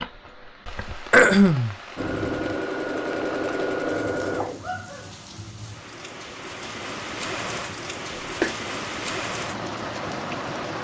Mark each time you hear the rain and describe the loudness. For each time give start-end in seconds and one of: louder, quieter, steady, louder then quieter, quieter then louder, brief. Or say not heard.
0.0-10.7 louder.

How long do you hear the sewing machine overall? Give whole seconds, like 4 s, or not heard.
3 s.